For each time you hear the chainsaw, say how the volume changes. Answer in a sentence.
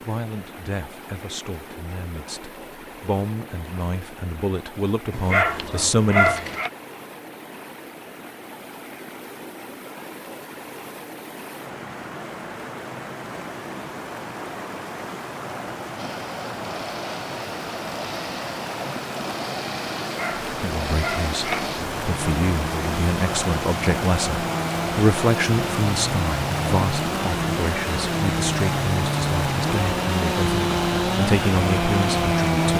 The chainsaw can be heard from 15.9 to 32.7 s, getting louder.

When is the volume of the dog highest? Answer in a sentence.
The loudest moment of the dog is at 6 seconds.